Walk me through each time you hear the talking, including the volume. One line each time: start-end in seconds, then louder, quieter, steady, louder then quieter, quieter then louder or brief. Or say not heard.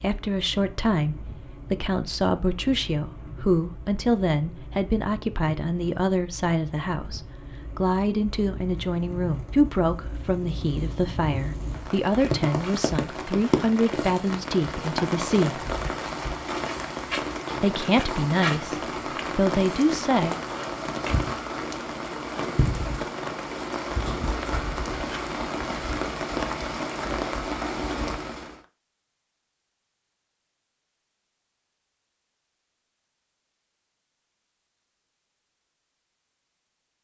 0.0-15.7 steady
17.6-20.4 brief.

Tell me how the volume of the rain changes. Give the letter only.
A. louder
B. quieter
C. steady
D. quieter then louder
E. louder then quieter
A.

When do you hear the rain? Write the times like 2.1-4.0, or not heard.
0.0-28.6.